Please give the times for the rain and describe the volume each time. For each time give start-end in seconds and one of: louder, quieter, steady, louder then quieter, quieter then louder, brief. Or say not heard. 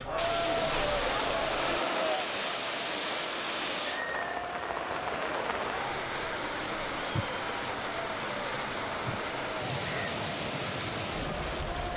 0.0-11.9 steady.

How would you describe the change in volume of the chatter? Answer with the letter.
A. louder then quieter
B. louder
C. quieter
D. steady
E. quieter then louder
C.